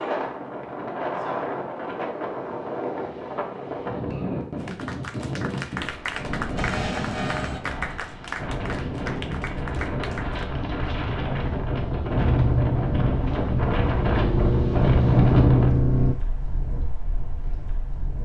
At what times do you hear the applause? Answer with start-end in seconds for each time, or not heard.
4.5-10.5.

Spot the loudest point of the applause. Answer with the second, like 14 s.
6 s.